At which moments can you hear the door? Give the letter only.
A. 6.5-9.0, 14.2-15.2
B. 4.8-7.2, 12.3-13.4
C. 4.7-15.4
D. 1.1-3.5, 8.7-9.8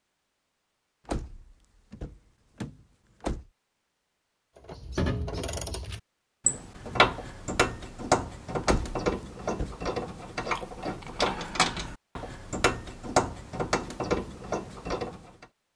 D.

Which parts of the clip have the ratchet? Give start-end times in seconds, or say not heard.
4.7-15.4.